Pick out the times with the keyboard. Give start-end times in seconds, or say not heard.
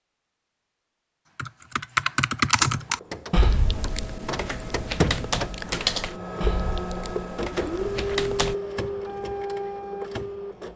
1.4-8.6.